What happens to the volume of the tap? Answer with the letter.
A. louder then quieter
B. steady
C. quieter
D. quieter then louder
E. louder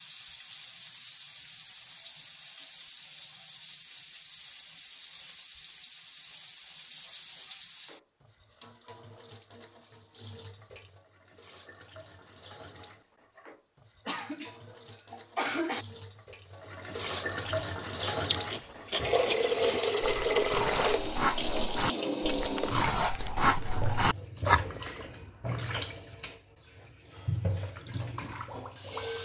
A.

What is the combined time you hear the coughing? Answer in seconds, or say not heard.
2 s.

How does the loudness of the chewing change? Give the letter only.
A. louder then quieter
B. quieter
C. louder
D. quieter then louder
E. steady
C.